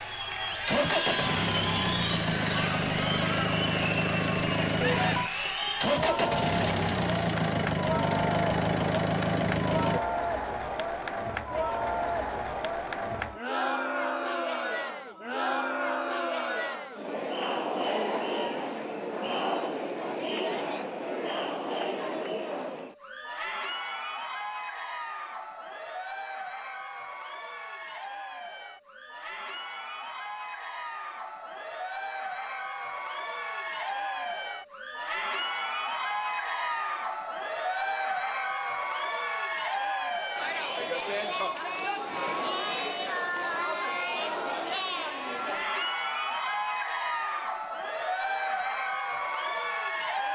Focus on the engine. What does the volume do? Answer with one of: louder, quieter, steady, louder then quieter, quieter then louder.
steady.